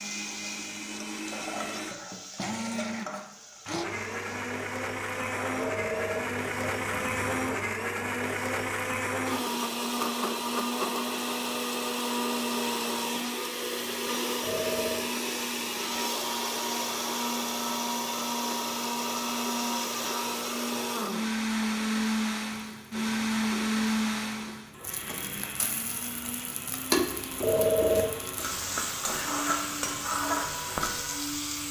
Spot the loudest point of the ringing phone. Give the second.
28 s.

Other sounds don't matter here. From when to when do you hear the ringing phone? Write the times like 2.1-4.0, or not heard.
5.5-7.5, 14.4-15.1, 27.4-28.1.